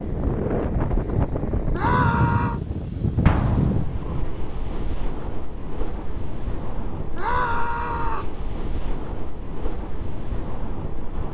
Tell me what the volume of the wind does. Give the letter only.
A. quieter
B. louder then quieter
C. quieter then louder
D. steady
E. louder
A.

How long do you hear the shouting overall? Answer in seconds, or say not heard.
2 s.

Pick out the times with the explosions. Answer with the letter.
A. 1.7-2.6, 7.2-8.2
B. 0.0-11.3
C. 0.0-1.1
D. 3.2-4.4
D.